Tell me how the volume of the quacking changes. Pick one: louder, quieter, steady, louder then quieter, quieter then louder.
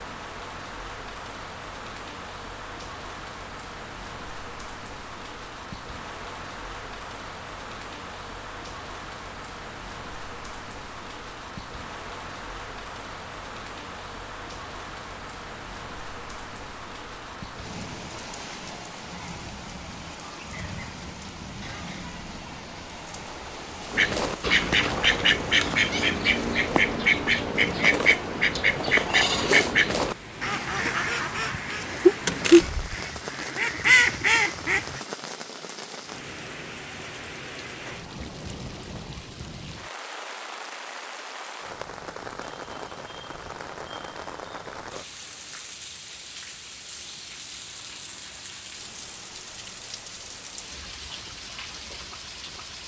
steady.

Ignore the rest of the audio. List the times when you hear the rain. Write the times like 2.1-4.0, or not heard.
0.0-52.8.